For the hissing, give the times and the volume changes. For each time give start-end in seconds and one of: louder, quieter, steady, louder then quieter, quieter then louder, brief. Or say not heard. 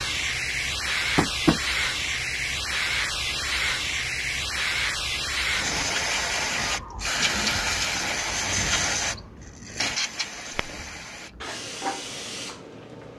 0.0-13.1 quieter.